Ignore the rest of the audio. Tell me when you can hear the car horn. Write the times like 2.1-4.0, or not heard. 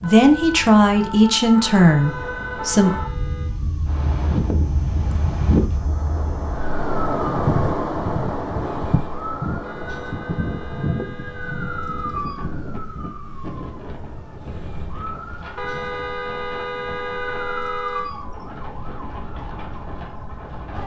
1.8-3.5, 9.6-12.2, 15.6-18.1.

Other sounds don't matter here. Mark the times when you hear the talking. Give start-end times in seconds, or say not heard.
0.0-3.0.